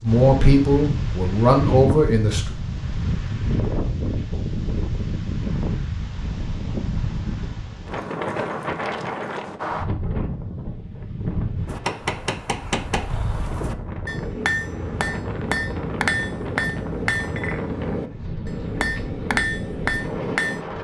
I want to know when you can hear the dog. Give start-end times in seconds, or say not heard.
not heard.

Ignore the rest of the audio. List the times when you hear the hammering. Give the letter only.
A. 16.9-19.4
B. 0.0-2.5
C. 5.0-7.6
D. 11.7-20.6
D.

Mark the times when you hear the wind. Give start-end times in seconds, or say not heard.
0.0-20.8.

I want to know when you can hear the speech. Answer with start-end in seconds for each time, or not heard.
0.0-2.5.